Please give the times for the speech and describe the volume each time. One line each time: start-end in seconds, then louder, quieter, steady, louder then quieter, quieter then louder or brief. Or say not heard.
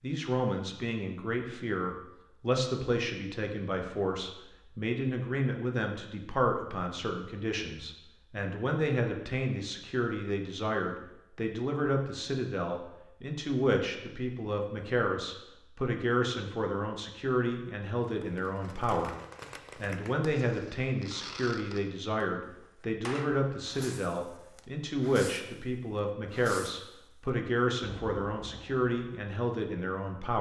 0.0-19.1 steady
19.8-30.3 steady.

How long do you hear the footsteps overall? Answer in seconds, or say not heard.
not heard.